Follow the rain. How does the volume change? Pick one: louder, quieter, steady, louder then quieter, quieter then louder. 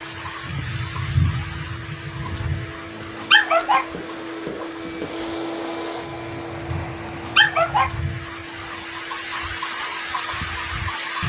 quieter then louder.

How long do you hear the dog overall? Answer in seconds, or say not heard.
4 s.